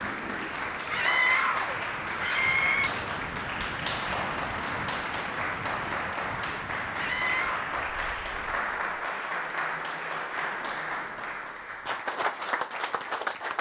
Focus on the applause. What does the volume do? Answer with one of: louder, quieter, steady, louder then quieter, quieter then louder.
steady.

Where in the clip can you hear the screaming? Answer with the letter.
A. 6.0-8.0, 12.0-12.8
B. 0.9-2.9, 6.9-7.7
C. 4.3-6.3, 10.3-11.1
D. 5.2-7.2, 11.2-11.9
B.